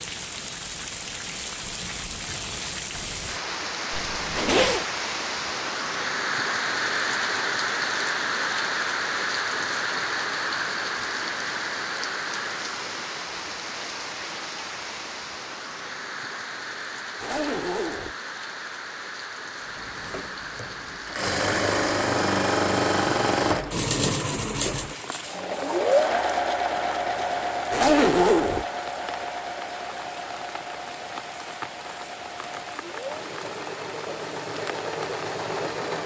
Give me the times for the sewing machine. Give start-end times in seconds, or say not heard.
19.7-36.0.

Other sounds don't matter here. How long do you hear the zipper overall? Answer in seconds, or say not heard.
3 s.